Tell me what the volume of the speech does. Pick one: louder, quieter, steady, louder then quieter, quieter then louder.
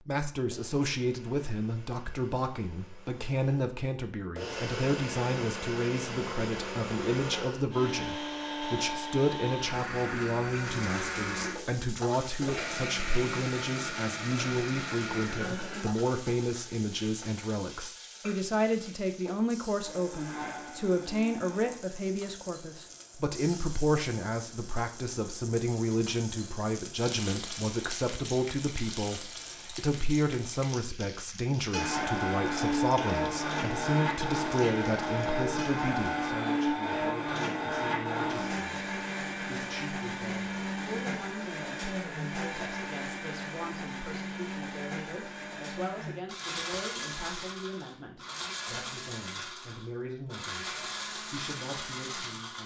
quieter.